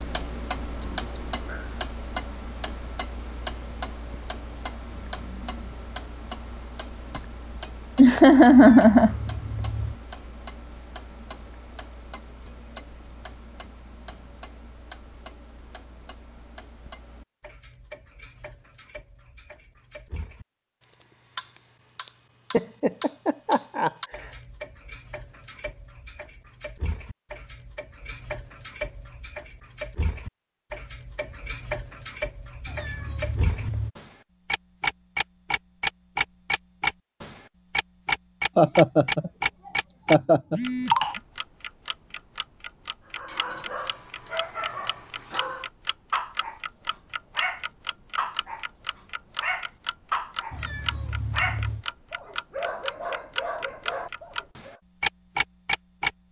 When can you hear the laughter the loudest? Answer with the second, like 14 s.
9 s.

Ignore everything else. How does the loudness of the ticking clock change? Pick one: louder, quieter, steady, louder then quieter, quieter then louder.
quieter then louder.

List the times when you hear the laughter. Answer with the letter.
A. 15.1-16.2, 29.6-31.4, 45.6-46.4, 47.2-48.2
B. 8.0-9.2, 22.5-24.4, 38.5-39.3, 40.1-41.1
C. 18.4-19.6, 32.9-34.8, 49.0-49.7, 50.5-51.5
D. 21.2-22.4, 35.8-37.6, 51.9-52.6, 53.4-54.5
B.